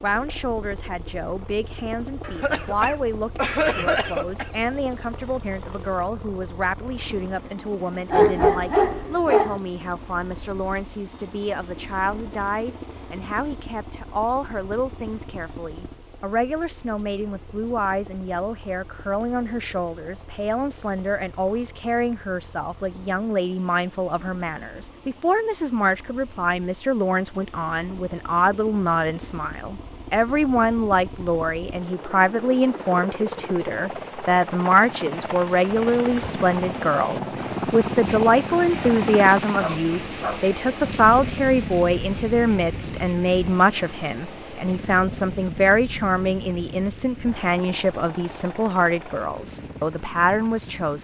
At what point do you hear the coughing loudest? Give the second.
4 s.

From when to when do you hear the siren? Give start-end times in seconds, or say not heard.
not heard.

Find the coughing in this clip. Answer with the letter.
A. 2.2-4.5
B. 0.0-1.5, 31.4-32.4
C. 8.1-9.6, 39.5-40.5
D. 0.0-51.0
A.